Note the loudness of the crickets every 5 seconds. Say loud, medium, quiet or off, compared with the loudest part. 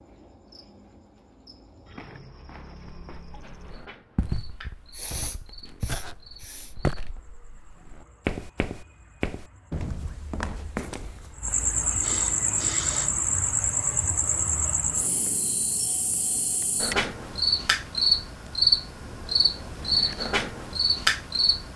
quiet, quiet, loud, loud, loud.